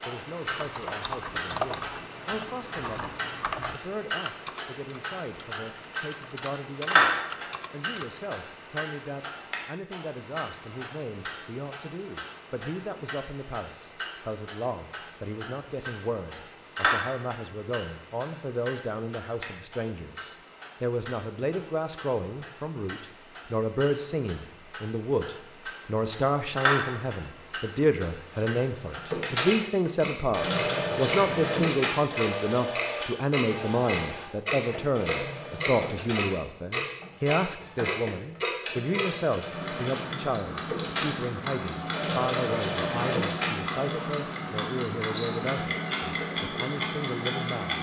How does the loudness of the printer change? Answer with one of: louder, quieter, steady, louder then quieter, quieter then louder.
quieter then louder.